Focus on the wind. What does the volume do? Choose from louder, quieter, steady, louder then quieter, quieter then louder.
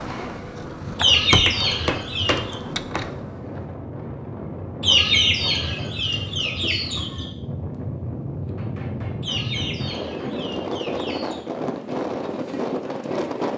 louder.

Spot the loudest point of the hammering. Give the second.
2 s.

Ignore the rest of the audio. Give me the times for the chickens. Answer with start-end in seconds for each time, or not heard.
0.9-2.5, 4.8-7.3, 9.2-11.4.